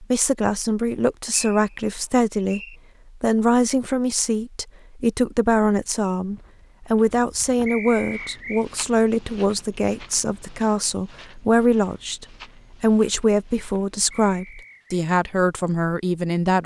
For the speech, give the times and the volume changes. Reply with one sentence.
The speech can be heard from 0.0 to 16.6 s, at a steady volume.